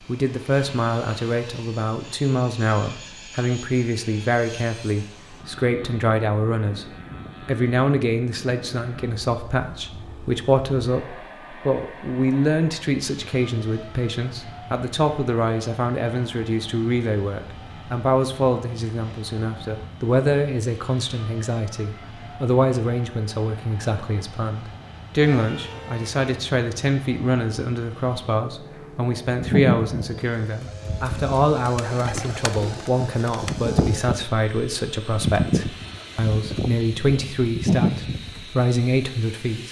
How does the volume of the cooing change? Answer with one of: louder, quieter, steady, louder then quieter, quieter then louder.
quieter then louder.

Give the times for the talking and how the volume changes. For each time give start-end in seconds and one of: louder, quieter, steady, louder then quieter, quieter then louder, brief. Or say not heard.
0.1-6.8 steady
7.5-39.6 steady.